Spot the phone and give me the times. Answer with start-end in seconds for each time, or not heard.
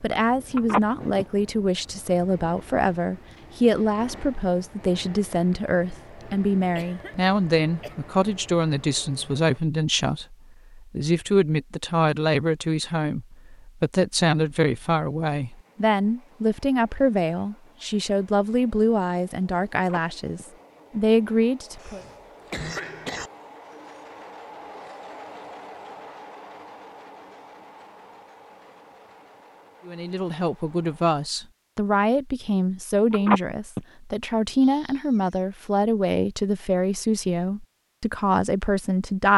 0.6-1.2, 19.8-20.4, 33.1-33.8.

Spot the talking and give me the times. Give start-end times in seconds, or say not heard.
0.0-22.0, 29.9-39.3.